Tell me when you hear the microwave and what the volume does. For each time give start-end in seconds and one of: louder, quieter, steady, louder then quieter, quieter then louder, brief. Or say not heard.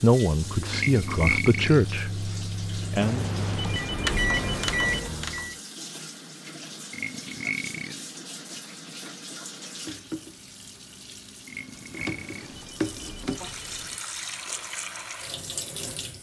0.2-5.5 louder.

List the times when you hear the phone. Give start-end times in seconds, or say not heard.
3.0-5.0, 11.9-14.0.